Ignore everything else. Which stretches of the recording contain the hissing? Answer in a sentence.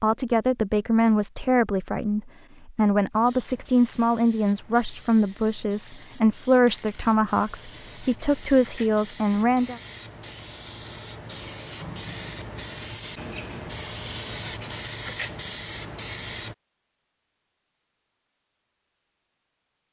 The hissing can be heard from 3.1 to 16.6 s.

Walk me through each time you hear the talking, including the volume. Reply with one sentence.
The talking can be heard from 0.0 to 9.8 s, at a steady volume.